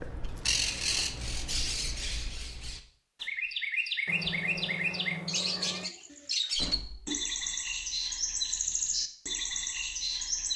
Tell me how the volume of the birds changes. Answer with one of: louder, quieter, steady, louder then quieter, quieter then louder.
steady.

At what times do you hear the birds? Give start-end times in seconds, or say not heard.
0.0-10.5.